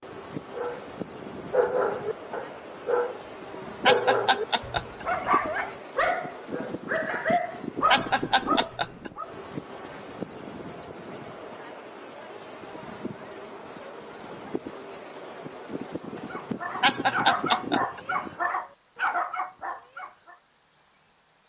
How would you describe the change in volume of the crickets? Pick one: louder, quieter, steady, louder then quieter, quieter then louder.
steady.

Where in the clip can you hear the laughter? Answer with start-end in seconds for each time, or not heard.
3.9-5.3, 7.9-9.1, 16.8-18.0.